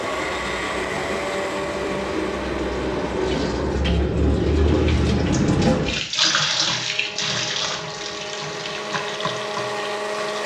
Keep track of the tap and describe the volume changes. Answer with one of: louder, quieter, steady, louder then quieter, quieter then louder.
louder then quieter.